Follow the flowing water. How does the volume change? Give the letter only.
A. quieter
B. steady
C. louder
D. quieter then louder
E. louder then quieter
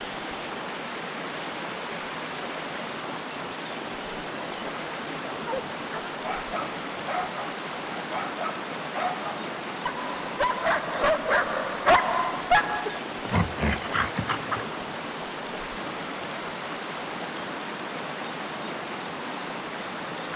B.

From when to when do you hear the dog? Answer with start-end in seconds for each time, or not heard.
5.5-14.8.